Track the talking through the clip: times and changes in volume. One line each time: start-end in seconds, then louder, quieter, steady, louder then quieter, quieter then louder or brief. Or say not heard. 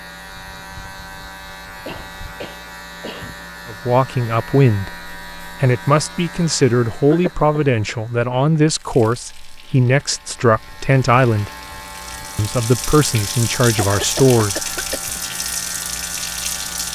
3.6-11.5 steady
12.3-14.7 brief.